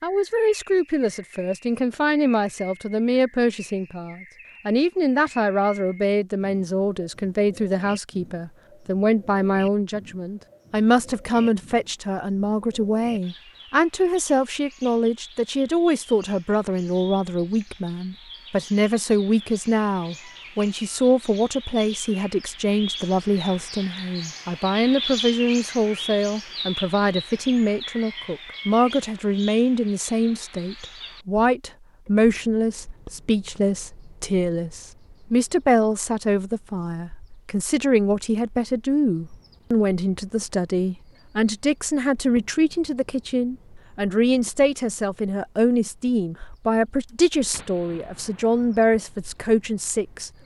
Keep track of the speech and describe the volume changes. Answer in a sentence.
The loudness of the speech stays about the same.